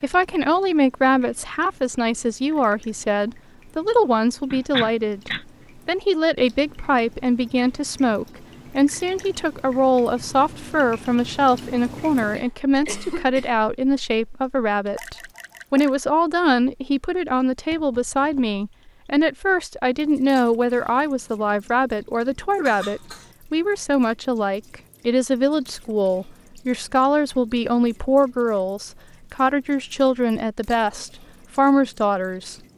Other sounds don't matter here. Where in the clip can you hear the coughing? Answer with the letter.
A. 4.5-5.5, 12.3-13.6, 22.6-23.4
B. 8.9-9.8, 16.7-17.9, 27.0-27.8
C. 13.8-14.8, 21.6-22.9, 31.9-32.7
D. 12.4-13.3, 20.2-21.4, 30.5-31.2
A.